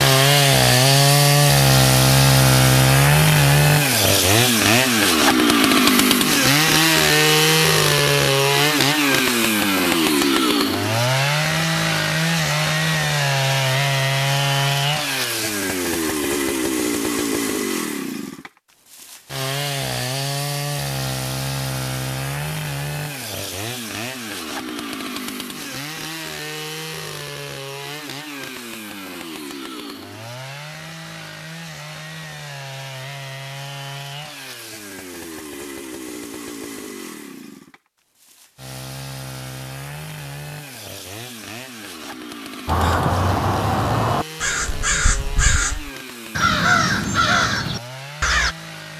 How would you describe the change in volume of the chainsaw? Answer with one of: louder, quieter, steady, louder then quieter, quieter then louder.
quieter.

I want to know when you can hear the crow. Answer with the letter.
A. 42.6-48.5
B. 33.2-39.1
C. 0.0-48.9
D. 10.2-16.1
A.